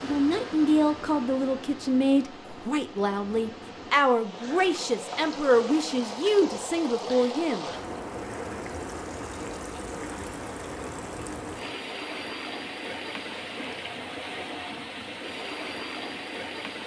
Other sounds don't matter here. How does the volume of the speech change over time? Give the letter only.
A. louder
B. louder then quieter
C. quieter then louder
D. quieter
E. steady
E.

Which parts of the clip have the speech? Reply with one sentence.
You can hear the speech from 0.0 to 7.7 s.